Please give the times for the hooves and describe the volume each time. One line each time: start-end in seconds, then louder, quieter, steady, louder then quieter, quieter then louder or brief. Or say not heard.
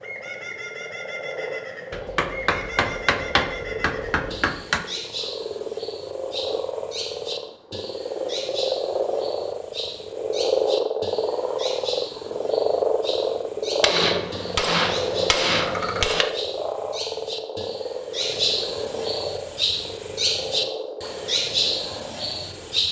not heard.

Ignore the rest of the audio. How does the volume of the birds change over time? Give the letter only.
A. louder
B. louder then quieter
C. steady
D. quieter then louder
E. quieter
A.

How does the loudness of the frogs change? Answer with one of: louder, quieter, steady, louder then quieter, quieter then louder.
louder then quieter.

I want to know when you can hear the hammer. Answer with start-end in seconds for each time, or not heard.
1.9-4.8, 13.8-16.3.